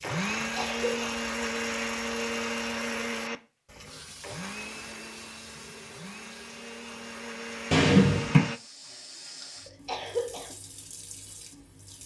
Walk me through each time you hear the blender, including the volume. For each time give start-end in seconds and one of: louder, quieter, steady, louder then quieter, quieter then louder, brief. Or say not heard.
0.0-8.6 quieter then louder.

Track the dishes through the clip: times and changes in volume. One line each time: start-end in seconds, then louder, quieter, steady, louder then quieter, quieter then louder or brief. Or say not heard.
not heard.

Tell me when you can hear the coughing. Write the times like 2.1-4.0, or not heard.
0.3-1.1, 9.7-10.6.